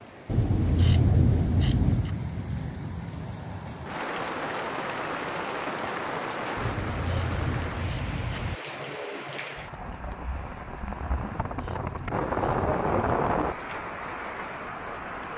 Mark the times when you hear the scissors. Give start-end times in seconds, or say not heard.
0.2-2.1, 6.5-8.6, 11.1-12.7.